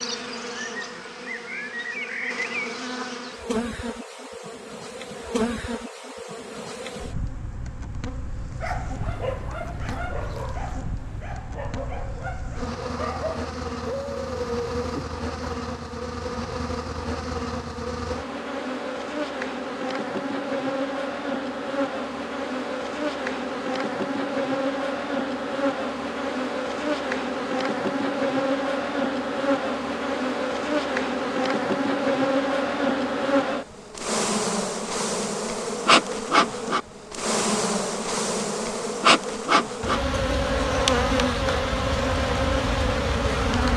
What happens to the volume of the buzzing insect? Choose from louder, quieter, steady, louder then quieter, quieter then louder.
louder.